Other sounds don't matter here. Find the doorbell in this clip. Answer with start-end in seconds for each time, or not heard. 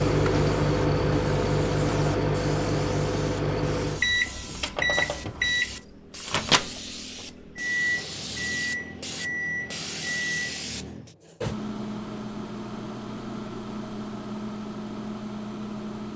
not heard.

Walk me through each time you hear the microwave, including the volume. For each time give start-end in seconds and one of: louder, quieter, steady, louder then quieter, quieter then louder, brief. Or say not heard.
0.0-16.1 quieter.